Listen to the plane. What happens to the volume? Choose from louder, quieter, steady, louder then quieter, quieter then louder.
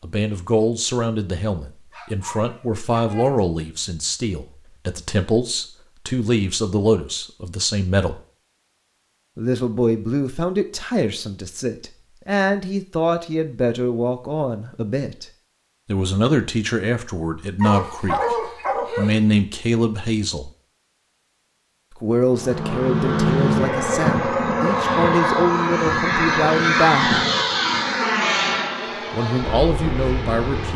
quieter.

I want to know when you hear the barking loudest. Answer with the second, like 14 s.
18 s.